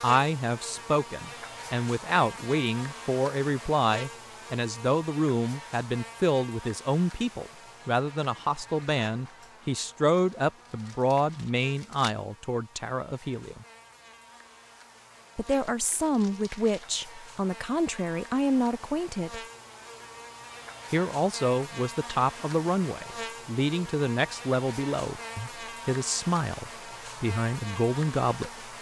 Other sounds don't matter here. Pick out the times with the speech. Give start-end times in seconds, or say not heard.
0.0-13.7, 15.3-19.4, 20.9-28.5.